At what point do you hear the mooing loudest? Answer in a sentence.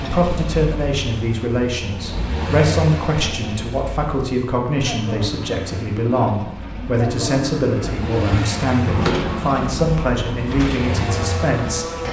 The volume of the mooing peaks at 9 seconds.